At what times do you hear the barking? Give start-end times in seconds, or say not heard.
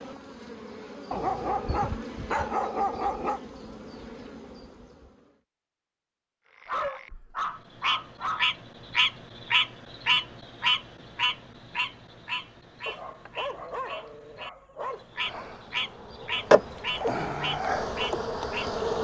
1.1-3.4, 6.7-8.5, 12.8-15.4.